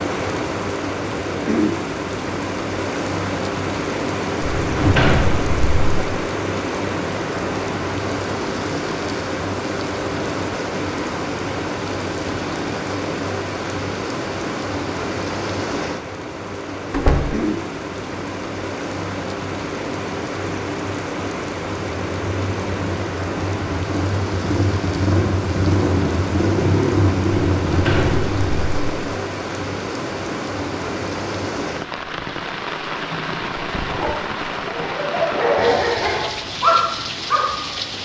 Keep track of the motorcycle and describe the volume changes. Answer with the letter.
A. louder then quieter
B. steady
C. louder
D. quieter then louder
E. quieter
C.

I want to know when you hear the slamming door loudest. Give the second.
5 s.